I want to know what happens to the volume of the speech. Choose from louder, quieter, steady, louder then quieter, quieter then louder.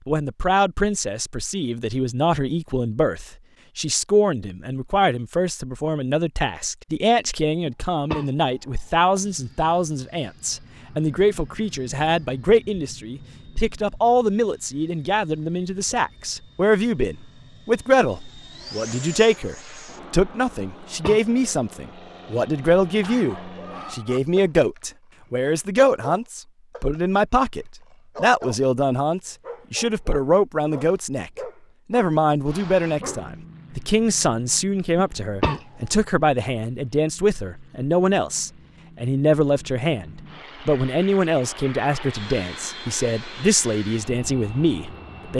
steady.